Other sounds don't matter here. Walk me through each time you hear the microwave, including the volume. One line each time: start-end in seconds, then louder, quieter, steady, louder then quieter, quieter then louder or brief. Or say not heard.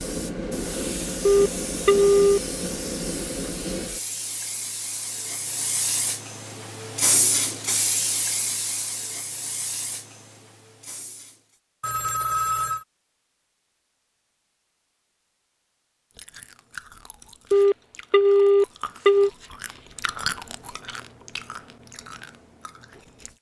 not heard.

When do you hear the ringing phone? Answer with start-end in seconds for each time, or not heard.
1.2-2.4, 11.8-12.8, 17.5-19.3.